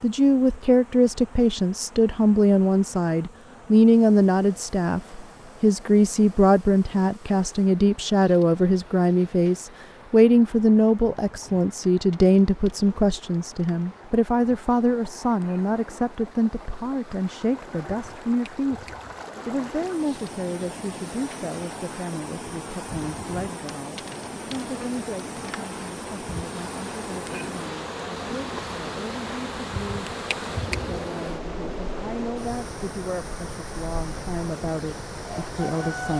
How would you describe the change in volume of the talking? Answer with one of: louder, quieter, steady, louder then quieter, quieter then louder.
quieter.